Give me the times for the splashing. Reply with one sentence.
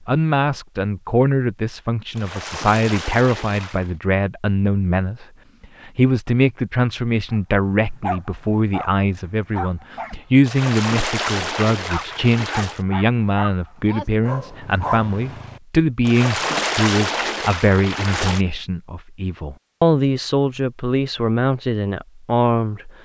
You can hear the splashing from 2.1 to 4.0 s, from 10.4 to 12.8 s and from 16.1 to 18.4 s.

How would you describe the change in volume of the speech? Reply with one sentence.
The loudness of the speech stays about the same.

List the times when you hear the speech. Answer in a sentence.
The speech can be heard from 0.1 to 22.9 s.